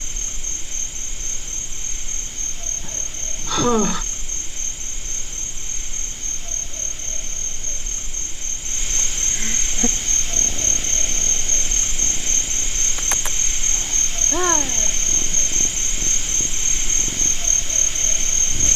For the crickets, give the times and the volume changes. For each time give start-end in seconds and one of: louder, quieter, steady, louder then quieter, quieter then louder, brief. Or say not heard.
0.0-18.7 louder.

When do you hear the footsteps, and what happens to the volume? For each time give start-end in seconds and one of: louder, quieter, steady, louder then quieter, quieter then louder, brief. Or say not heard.
not heard.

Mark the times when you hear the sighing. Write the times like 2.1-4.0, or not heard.
2.8-4.0, 8.9-9.9, 14.3-14.9.